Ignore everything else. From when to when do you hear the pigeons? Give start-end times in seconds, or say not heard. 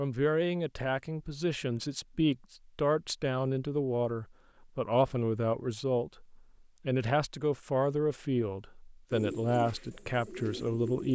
9.1-11.1.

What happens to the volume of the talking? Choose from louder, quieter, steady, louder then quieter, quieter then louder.
steady.